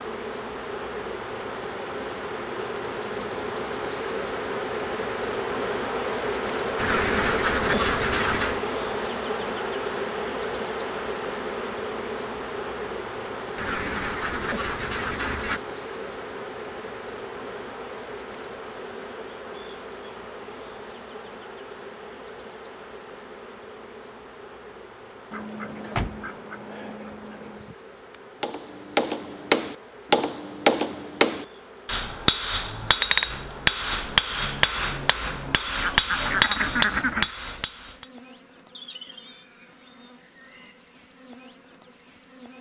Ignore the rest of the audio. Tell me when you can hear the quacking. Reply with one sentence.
The quacking can be heard from 6.8 to 8.6 s, from 13.6 to 15.6 s, from 25.3 to 27.8 s and from 35.8 to 37.4 s.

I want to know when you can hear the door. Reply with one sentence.
The door can be heard from 25.8 to 26.2 s.